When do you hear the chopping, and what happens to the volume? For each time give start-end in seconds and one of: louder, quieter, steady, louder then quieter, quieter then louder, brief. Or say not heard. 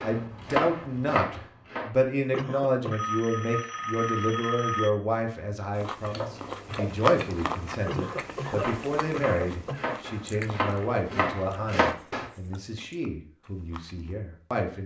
0.0-1.9 brief
6.0-12.3 quieter then louder.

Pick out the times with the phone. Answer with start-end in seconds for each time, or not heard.
2.9-4.9.